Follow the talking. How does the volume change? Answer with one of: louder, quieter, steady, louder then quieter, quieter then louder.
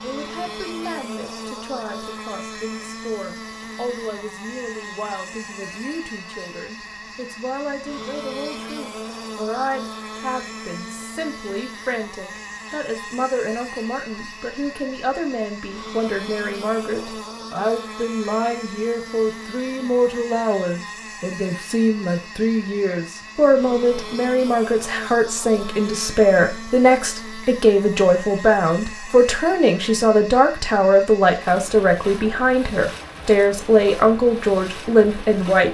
louder.